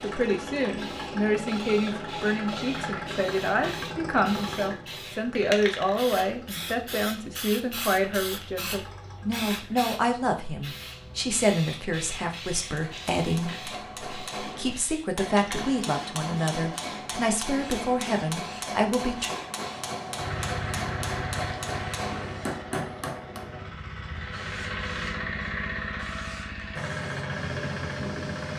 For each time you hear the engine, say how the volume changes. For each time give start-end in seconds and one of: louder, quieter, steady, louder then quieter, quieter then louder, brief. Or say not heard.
0.0-9.8 quieter
20.1-28.5 quieter then louder.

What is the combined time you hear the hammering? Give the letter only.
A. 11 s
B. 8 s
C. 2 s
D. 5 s
A.